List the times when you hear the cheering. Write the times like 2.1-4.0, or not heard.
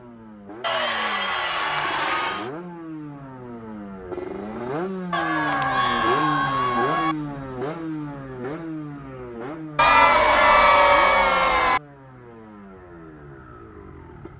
0.6-2.5, 5.1-7.2, 9.8-11.8.